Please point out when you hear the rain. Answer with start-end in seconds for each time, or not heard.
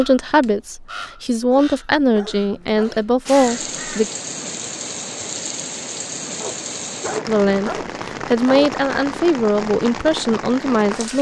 3.2-11.1.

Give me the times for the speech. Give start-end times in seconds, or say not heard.
0.0-4.0, 7.2-11.1.